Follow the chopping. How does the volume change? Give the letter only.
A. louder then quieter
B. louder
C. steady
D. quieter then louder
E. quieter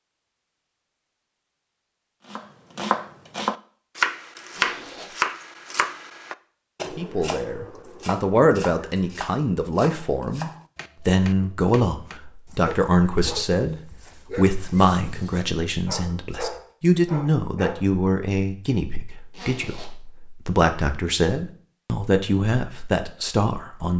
E.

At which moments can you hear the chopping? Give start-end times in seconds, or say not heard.
2.3-12.2.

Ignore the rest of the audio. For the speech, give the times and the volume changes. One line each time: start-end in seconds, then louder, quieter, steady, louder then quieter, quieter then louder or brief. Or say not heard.
6.9-23.9 steady.